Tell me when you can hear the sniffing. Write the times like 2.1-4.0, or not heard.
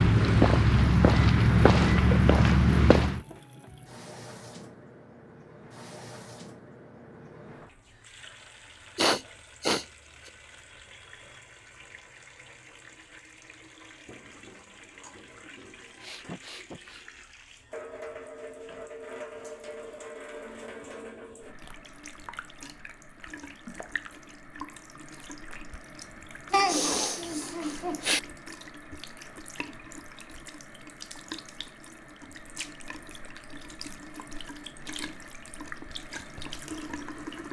8.9-9.8, 15.9-17.1, 26.5-28.2.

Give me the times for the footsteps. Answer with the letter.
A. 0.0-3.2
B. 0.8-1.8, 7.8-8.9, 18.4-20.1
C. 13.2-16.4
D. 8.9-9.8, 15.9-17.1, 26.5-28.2
A.